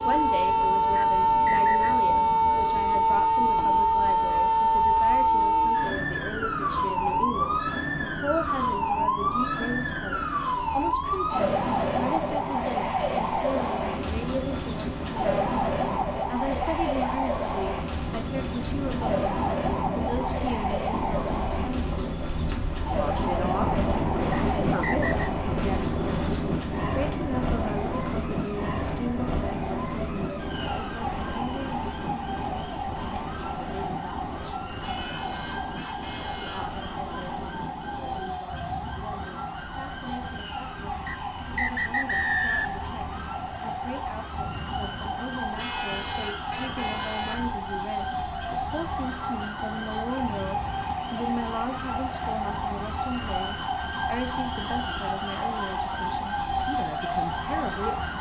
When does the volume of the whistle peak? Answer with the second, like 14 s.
42 s.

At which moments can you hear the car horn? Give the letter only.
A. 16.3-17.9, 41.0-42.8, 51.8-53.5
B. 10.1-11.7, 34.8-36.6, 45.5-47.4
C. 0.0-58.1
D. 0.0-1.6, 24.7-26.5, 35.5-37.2
B.